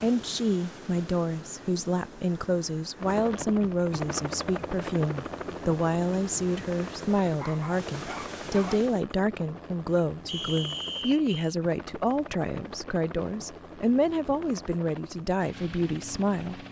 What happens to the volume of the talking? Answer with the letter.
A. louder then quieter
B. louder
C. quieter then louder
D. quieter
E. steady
E.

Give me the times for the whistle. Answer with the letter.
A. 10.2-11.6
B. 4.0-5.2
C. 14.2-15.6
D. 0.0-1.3
A.